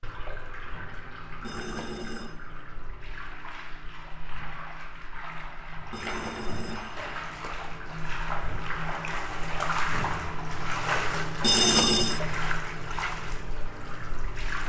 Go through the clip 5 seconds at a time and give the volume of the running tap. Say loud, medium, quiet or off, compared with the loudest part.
medium, loud, loud.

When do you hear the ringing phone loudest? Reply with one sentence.
The loudest moment of the ringing phone is at 12 seconds.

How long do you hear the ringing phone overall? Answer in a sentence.
The ringing phone can be heard for 3 seconds in total.